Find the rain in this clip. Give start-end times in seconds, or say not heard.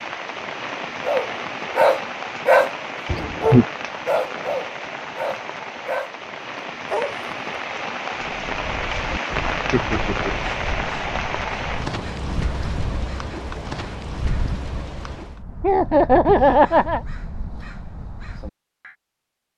0.0-15.4.